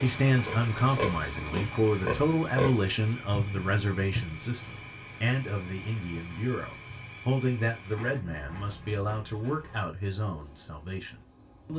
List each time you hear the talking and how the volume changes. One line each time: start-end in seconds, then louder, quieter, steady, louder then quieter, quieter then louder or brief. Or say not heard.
0.0-11.7 quieter.